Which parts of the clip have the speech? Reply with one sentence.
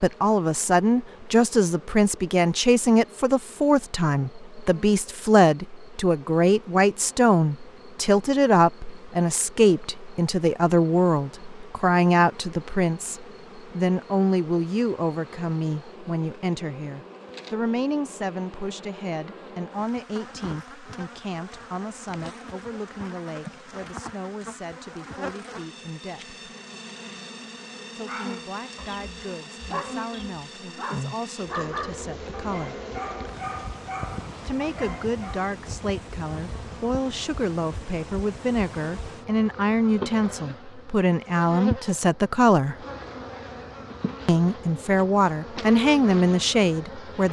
You can hear the speech from 0.0 to 26.4 s, from 27.9 to 32.8 s, from 34.5 to 42.8 s and from 44.2 to 47.2 s.